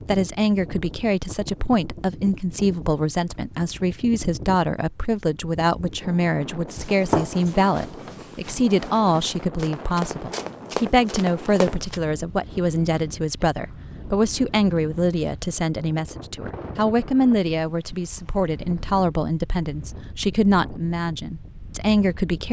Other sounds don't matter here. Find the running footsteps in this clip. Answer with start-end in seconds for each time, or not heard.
6.7-12.0.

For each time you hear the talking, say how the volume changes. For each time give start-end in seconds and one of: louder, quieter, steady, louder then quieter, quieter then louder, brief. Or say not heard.
0.1-22.4 steady.